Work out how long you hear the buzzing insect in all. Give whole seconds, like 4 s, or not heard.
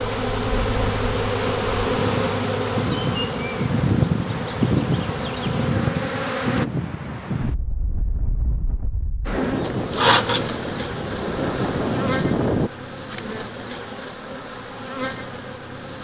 13 s.